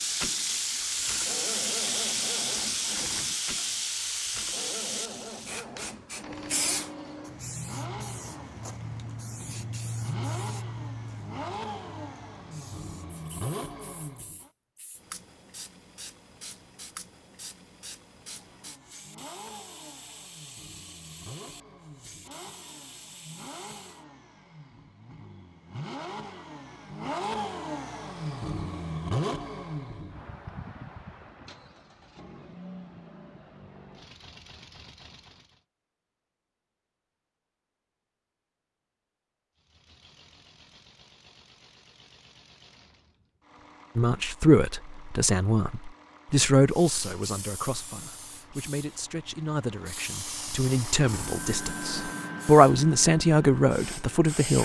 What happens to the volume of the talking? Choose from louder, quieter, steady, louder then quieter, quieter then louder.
quieter then louder.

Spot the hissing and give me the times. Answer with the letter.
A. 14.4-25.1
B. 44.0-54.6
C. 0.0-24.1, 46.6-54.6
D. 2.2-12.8
C.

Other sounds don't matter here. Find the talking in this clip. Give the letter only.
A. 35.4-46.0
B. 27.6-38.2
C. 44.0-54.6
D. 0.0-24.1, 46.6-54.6
C.